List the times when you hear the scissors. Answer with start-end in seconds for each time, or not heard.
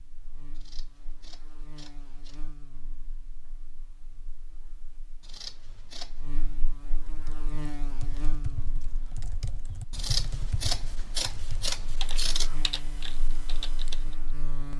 0.6-2.4, 5.2-6.2, 9.9-12.5.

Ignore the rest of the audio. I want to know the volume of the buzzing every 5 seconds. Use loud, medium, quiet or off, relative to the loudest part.
medium, loud, loud.